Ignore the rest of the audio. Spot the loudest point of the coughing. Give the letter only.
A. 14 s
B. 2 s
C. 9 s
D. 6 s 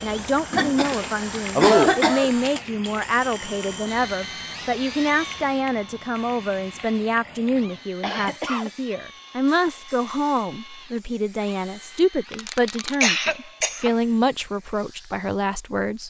B.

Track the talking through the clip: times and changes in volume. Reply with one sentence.
The talking can be heard from 0.0 to 16.0 s, at a steady volume.